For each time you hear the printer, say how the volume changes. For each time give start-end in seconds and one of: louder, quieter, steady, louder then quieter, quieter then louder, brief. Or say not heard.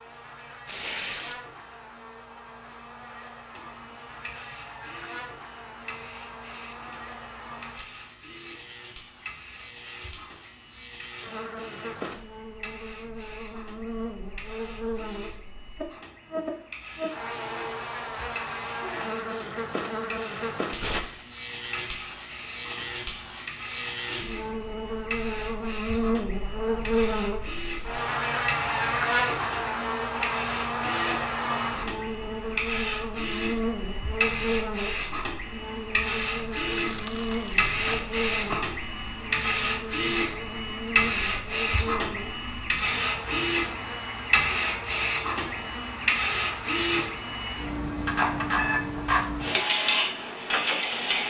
3.5-51.2 louder.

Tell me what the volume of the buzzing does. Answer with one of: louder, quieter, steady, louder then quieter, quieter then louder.
louder then quieter.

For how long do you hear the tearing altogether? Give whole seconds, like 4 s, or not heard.
3 s.